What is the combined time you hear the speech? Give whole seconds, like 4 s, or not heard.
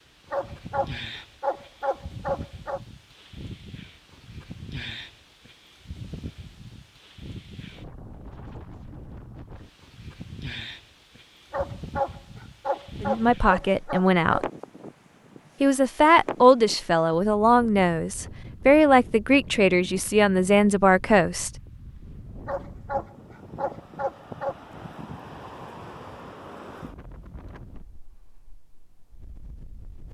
7 s.